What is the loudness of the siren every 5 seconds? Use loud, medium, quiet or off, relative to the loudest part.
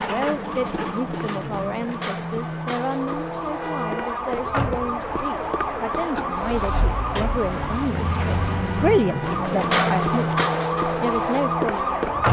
medium, loud, loud.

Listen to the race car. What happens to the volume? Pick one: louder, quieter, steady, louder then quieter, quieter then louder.
louder.